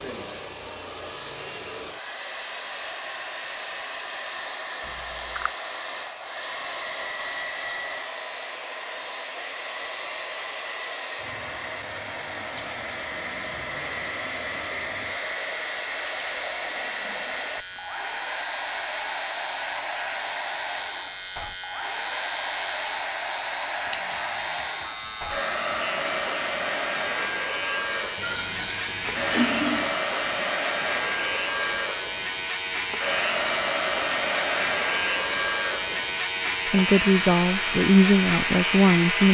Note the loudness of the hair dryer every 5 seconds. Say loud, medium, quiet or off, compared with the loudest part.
medium, medium, medium, loud, loud, loud, loud, loud.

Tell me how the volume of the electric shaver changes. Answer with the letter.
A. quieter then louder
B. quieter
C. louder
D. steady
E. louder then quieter
C.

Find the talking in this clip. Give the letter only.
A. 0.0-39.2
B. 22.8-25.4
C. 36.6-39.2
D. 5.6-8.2
C.